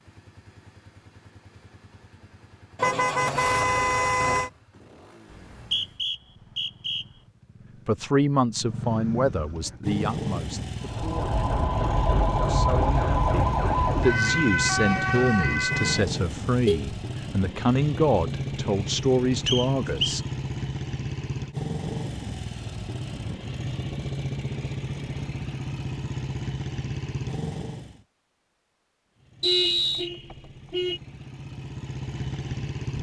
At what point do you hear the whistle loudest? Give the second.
30 s.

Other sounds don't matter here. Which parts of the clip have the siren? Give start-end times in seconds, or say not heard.
10.8-16.2.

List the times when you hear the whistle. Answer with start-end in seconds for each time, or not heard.
5.3-7.0, 19.4-20.1, 29.4-30.1.